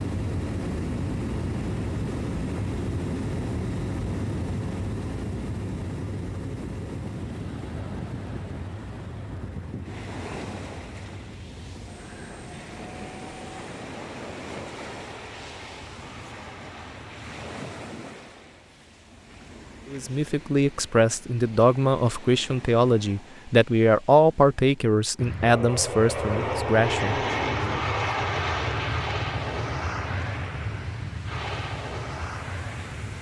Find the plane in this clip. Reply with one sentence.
You can hear the plane from 0.0 to 17.6 s and from 25.1 to 33.1 s.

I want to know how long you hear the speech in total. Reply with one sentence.
You can hear the speech for 8 seconds altogether.